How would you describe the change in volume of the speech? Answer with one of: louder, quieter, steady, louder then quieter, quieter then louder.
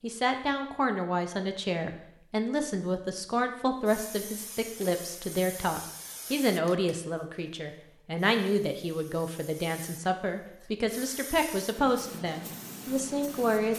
steady.